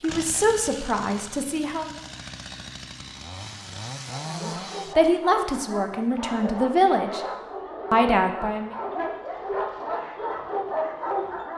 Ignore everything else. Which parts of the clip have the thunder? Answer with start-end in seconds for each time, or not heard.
not heard.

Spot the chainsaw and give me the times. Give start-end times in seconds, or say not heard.
0.0-5.0.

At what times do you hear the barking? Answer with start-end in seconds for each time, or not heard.
4.0-11.5.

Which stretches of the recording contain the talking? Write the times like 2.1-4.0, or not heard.
0.0-1.9, 4.2-7.2, 7.9-8.8.